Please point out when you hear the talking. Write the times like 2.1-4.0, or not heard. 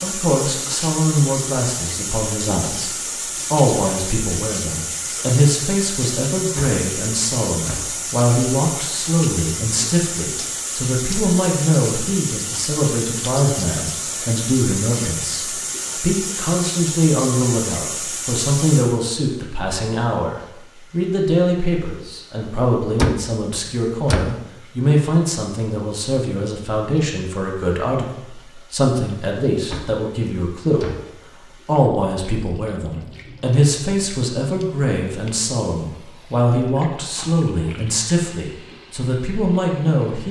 0.0-2.9, 3.5-30.9, 31.6-40.2.